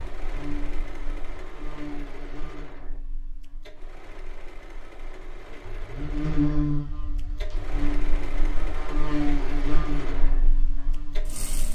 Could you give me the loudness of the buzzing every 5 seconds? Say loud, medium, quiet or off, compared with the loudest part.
quiet, loud, quiet.